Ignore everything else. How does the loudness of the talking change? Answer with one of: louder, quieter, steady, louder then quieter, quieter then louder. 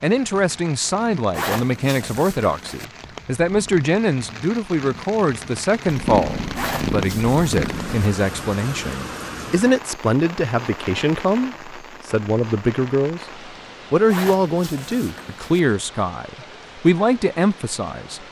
steady.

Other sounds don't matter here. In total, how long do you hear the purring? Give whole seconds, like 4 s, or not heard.
2 s.